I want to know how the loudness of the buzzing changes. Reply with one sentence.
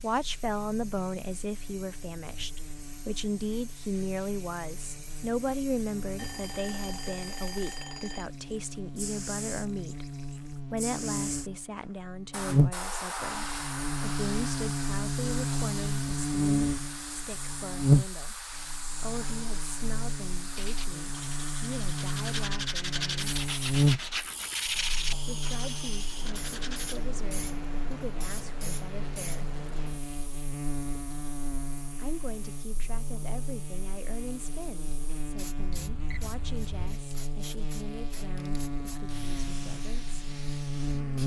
The loudness of the buzzing goes up, then down.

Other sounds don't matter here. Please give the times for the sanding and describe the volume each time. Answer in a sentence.
The sanding can be heard from 20.6 to 27.0 s, getting louder then quieter.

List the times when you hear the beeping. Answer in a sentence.
The beeping can be heard from 6.2 to 8.3 s and from 35.8 to 36.8 s.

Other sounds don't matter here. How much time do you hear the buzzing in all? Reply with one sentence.
The buzzing can be heard for 41 seconds in total.